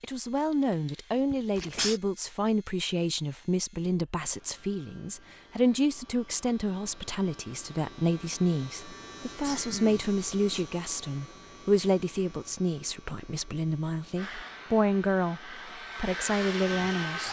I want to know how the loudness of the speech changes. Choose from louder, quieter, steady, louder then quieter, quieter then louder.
steady.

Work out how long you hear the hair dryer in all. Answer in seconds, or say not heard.
3 s.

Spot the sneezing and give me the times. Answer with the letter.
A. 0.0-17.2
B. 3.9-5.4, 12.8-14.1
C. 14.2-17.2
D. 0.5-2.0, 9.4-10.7
D.